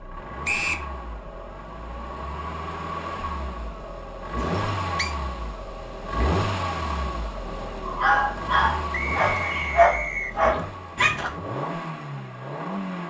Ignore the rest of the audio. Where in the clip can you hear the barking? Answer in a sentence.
The barking can be heard from 7.8 to 11.3 s.